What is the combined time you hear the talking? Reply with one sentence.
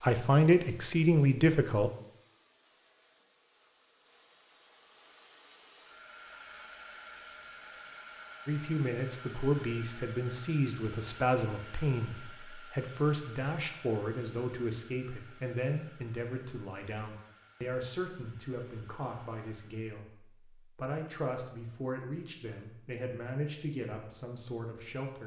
The talking can be heard for 19 seconds in total.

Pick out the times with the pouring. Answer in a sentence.
The pouring can't be heard in this clip.